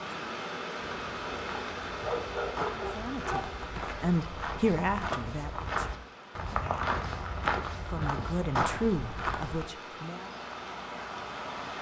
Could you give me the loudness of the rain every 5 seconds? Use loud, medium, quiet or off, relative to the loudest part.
loud, medium, loud.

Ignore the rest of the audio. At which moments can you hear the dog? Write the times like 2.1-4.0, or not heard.
2.0-3.6.